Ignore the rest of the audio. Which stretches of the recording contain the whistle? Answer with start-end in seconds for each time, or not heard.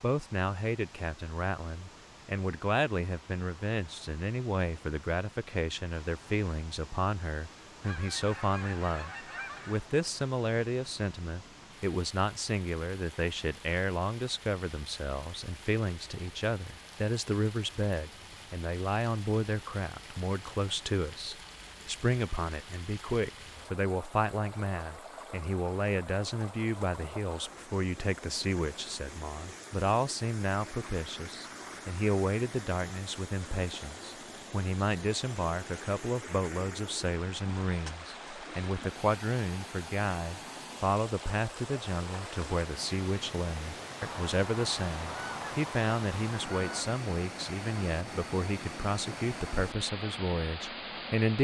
not heard.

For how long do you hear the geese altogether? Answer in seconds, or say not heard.
5 s.